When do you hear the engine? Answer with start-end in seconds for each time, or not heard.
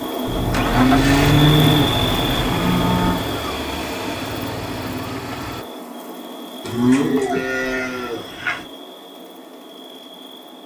0.0-5.7.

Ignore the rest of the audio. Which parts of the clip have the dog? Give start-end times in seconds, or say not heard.
not heard.